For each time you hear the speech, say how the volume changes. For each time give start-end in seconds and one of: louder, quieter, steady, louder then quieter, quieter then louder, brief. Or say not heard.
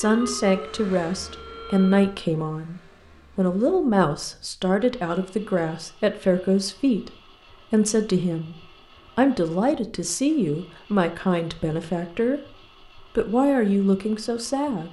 0.0-14.8 steady.